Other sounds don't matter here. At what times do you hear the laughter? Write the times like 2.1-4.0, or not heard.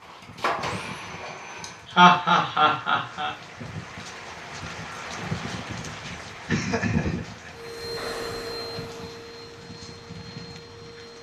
1.6-3.4, 6.5-7.5.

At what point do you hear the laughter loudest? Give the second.
2 s.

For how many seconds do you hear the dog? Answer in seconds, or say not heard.
not heard.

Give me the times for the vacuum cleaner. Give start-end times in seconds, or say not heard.
0.0-1.9, 7.5-11.1.